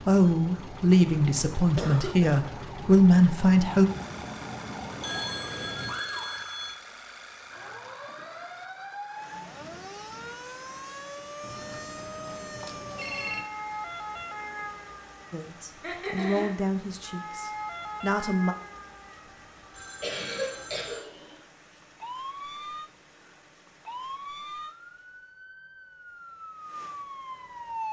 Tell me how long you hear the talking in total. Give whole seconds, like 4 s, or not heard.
7 s.